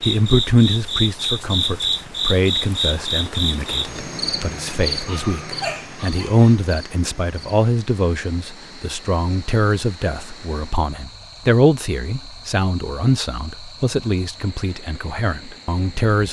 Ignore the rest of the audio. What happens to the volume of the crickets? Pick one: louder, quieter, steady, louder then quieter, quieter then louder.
quieter.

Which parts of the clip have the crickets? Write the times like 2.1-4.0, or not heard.
0.0-16.2.